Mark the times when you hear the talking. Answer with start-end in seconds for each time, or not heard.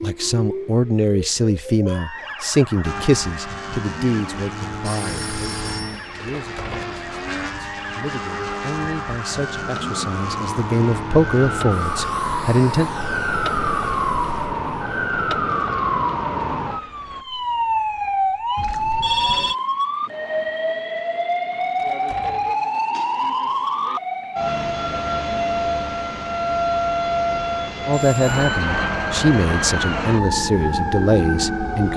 0.0-12.9, 27.9-31.9.